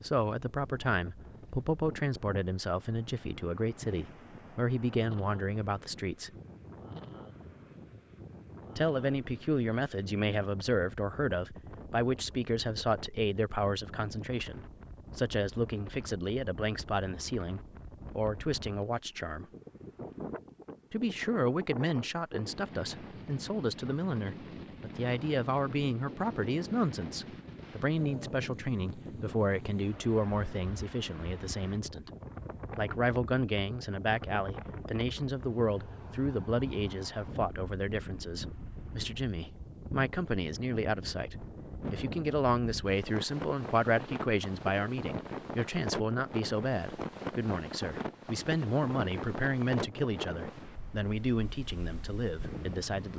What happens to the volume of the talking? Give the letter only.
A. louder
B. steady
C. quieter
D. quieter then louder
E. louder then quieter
B.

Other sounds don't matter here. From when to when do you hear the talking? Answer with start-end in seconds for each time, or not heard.
0.0-6.3, 8.8-19.4, 20.9-32.1, 32.8-53.1.